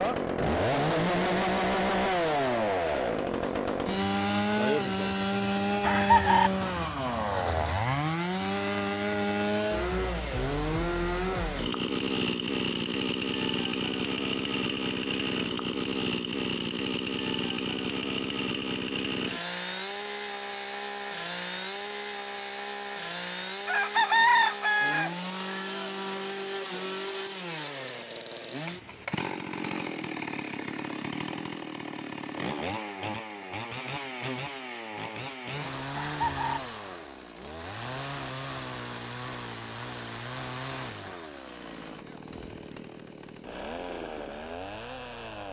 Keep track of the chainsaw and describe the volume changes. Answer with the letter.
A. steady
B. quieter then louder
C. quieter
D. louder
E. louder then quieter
C.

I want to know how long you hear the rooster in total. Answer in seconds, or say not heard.
3 s.